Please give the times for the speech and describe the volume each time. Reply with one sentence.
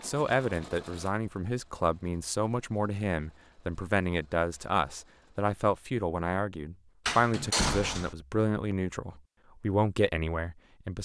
You can hear the speech from 0.0 to 11.0 s, at a steady volume.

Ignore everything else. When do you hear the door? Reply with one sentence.
You can hear the door from 7.0 to 8.2 s.